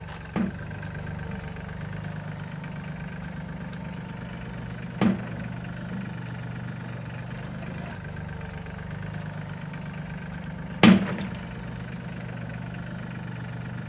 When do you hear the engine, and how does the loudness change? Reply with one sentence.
You can hear the engine from 0.0 to 13.8 s, at a steady volume.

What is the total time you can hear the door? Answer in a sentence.
The door can be heard for 3 seconds in total.